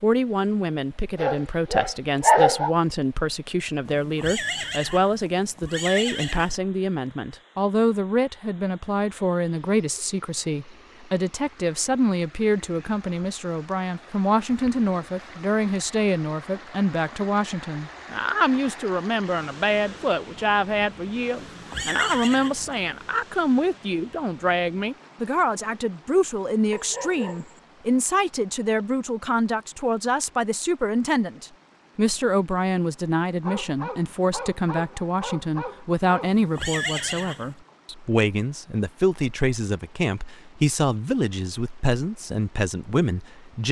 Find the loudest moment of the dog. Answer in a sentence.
The volume of the dog peaks at 2 seconds.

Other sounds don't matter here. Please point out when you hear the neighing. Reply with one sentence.
The neighing can be heard from 3.9 to 6.5 s, from 21.4 to 22.9 s and from 36.2 to 37.5 s.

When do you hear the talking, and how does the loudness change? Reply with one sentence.
The talking can be heard from 0.0 to 43.6 s, at a steady volume.